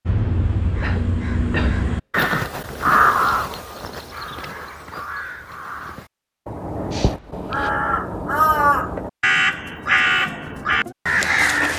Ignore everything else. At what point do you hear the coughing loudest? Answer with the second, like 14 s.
2 s.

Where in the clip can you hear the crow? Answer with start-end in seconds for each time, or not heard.
0.1-11.7.